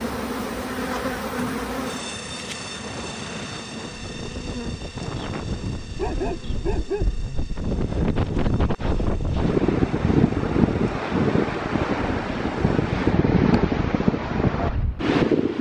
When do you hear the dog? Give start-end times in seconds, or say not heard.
6.0-7.2.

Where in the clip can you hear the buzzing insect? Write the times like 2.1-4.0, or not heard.
0.0-12.9.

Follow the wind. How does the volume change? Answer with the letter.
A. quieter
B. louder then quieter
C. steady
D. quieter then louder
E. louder
E.